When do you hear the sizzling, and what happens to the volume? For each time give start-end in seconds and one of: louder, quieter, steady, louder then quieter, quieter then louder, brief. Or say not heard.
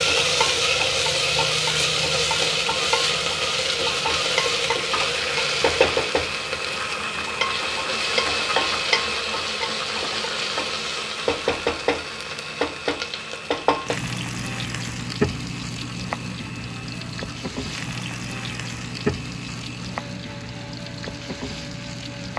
0.0-22.3 quieter.